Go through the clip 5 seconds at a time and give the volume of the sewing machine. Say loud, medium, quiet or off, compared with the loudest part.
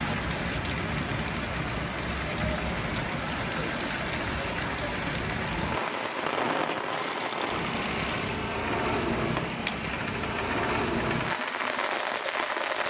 off, loud, loud.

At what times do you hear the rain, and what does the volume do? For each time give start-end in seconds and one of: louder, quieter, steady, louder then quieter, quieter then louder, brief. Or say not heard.
0.0-12.8 steady.